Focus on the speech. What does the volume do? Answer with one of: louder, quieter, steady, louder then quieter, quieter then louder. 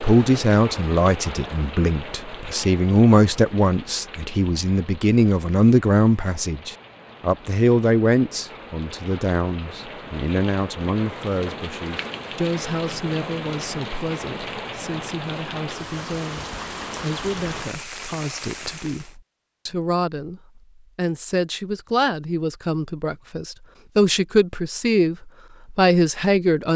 quieter then louder.